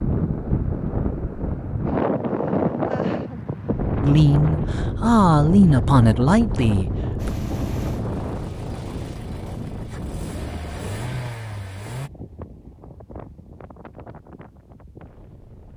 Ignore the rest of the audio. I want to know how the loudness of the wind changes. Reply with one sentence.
The loudness of the wind goes down.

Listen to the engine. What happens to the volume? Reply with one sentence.
The volume of the engine goes down, then up.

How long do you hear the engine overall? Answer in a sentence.
You can hear the engine for 5 seconds altogether.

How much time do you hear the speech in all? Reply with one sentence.
You can hear the speech for 3 seconds altogether.